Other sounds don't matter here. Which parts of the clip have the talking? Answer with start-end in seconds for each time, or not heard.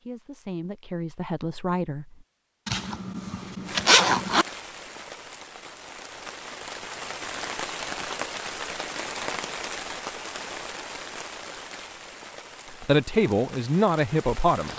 0.0-2.0, 12.7-14.7.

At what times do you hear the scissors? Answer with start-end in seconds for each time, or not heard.
not heard.